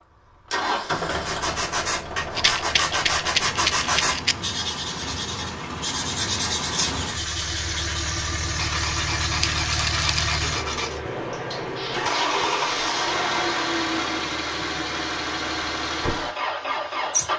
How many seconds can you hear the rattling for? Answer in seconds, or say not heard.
3 s.